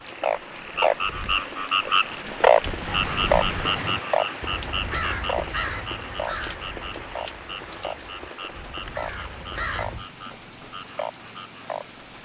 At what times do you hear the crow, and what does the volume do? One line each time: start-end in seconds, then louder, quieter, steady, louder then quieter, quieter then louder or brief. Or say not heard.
2.8-10.1 quieter then louder.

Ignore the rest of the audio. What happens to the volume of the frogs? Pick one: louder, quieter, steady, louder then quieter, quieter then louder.
quieter.